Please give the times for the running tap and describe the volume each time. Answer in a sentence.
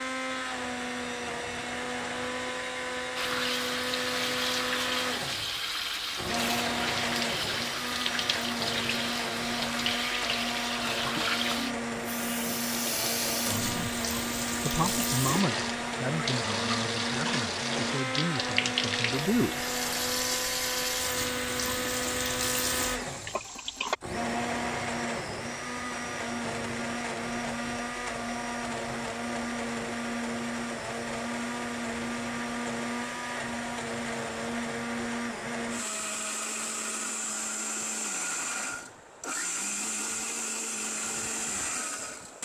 The running tap can be heard from 3.1 to 23.9 s, at a steady volume.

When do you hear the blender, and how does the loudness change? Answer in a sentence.
The blender can be heard from 0.0 to 42.4 s, at a steady volume.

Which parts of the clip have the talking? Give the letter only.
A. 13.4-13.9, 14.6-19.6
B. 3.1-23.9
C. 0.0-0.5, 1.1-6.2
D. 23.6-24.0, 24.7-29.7
A.